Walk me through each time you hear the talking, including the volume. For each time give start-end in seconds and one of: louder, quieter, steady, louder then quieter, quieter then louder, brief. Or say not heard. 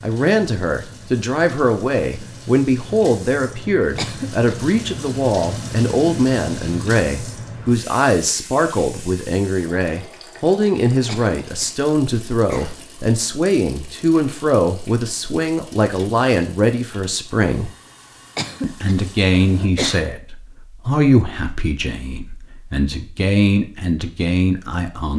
0.0-17.7 steady
18.6-25.1 quieter then louder.